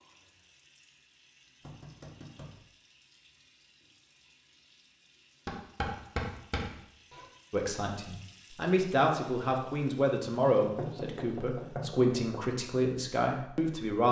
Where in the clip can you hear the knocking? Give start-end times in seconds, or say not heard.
1.6-2.6, 5.5-7.2, 10.6-12.2.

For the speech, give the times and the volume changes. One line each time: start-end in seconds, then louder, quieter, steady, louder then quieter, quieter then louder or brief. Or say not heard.
7.5-14.0 steady.